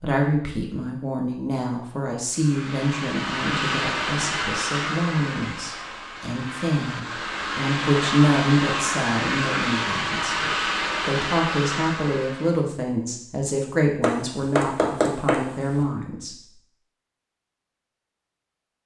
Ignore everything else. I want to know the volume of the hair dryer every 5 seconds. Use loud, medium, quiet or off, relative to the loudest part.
loud, loud, loud, off.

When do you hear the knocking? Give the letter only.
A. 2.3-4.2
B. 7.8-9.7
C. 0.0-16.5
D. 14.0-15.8
D.